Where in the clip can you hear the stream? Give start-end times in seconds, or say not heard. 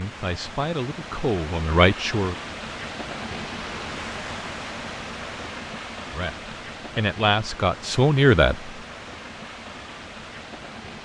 0.0-11.0.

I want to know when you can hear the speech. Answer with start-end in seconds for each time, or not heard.
0.0-2.4, 6.1-8.7.